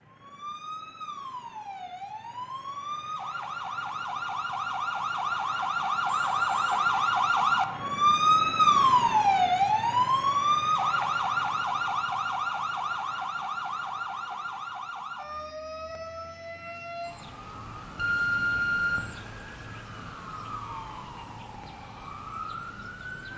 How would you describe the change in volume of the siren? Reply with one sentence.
The loudness of the siren goes up, then down.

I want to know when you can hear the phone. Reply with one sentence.
The phone can be heard from 6.0 to 6.8 s and from 17.9 to 19.1 s.